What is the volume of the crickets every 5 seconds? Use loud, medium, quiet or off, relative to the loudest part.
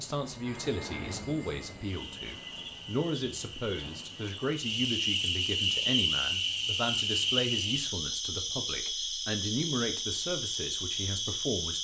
medium, loud, loud.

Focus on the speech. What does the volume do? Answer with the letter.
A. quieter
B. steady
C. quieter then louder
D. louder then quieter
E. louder
B.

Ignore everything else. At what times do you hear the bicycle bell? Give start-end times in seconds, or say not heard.
not heard.